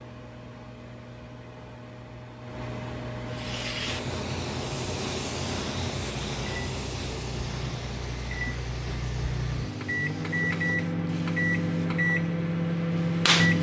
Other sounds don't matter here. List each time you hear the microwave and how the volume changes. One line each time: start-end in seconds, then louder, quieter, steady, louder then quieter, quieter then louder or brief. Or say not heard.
0.0-13.5 louder.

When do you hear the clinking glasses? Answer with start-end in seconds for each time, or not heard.
not heard.